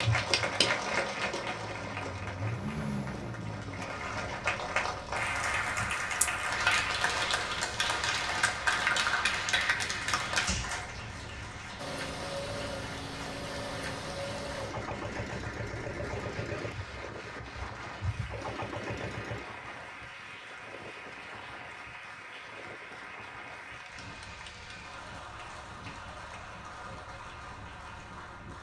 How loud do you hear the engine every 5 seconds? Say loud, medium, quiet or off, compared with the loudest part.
loud, off, loud, loud, off, off.